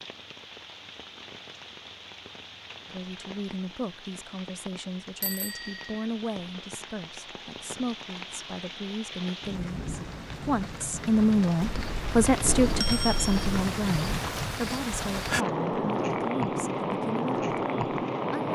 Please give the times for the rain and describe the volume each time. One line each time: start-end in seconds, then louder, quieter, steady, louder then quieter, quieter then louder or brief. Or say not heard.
0.0-18.5 louder.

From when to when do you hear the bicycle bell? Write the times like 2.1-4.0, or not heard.
5.2-6.0, 11.6-13.6.